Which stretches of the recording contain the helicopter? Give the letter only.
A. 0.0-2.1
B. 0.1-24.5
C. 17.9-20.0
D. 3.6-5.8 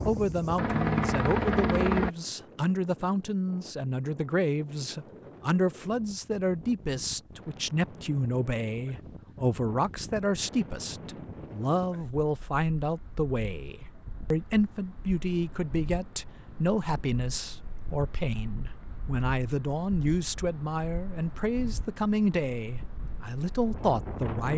A.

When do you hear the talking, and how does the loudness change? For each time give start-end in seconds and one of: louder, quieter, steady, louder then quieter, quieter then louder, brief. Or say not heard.
0.1-24.5 steady.